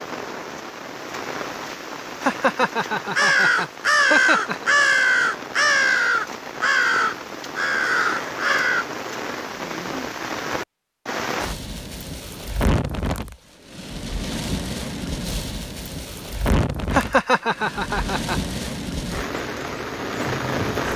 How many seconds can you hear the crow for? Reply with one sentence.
The crow can be heard for 6 seconds in total.